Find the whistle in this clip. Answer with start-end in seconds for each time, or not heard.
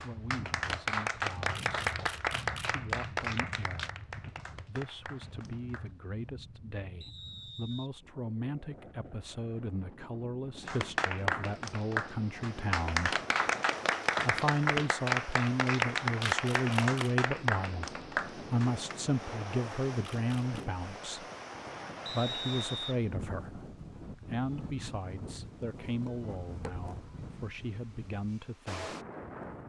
7.0-7.9, 22.1-22.9.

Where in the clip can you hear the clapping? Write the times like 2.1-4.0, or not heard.
0.0-5.9, 10.7-18.9.